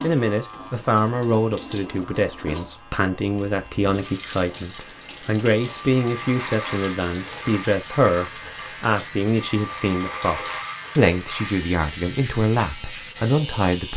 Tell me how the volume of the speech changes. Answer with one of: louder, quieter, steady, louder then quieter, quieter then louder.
steady.